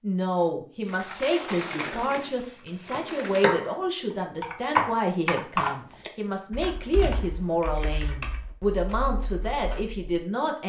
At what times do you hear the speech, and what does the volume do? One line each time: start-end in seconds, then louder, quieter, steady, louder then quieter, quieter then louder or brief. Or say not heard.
0.0-10.6 steady.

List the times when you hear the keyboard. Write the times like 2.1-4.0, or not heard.
0.8-3.8, 4.4-10.1.